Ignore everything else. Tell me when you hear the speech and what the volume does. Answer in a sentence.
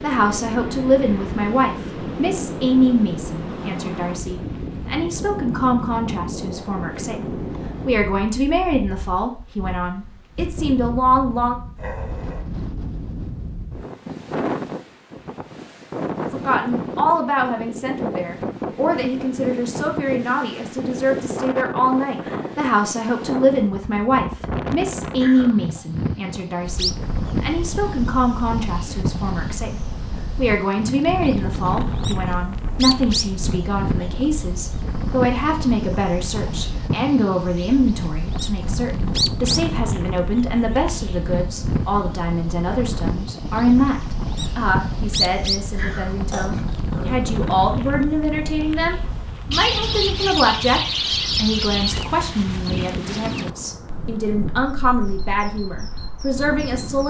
The speech can be heard from 0.0 to 11.6 s, at a steady volume; and from 16.3 to 57.0 s, at a steady volume.